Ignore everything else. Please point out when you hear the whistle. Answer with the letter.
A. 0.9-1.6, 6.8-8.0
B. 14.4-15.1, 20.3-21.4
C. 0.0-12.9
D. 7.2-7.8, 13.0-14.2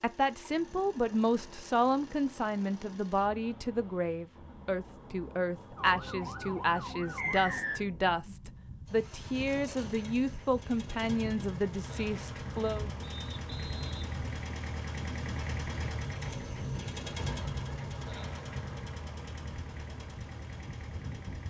D.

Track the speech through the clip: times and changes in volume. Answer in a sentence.
The speech can be heard from 0.0 to 12.9 s, at a steady volume.